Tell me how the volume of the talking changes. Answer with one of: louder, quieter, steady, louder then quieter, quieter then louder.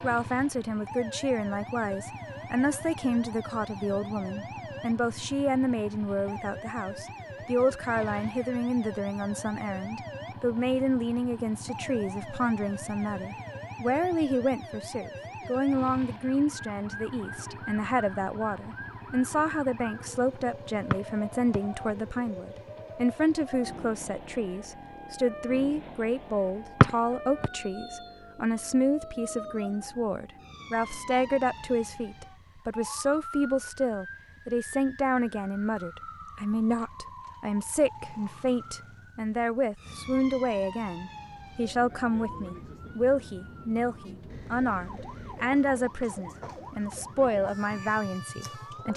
steady.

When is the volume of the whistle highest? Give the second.
27 s.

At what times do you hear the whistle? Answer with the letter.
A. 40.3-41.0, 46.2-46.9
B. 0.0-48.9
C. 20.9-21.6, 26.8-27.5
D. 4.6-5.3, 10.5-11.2
C.